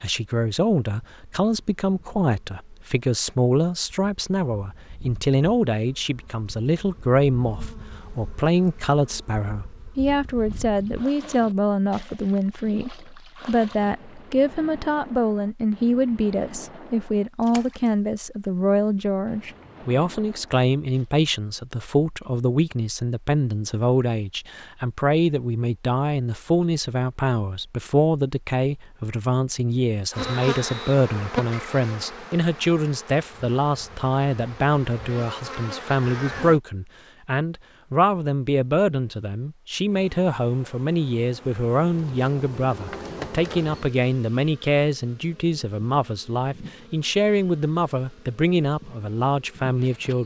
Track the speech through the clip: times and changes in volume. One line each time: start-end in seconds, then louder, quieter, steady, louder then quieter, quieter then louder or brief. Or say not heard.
0.0-50.2 steady.